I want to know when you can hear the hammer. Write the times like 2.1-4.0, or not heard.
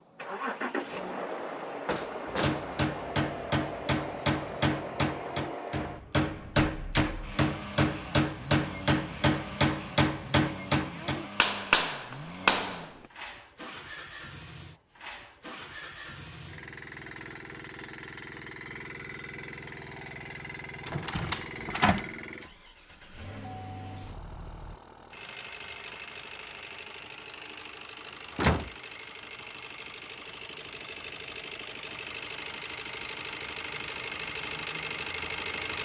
2.2-12.9.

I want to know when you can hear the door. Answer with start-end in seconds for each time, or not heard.
1.9-2.7, 20.9-22.1, 28.1-28.8.